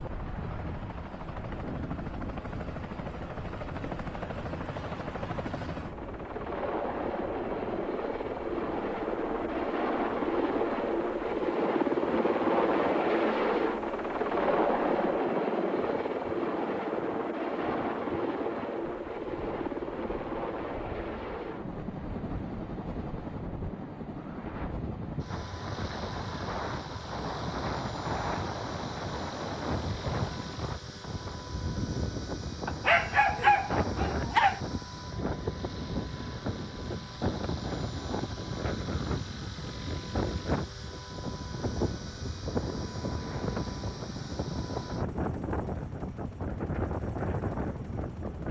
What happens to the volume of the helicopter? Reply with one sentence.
The loudness of the helicopter goes up, then down.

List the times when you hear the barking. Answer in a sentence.
You can hear the barking from 32.6 to 34.6 s.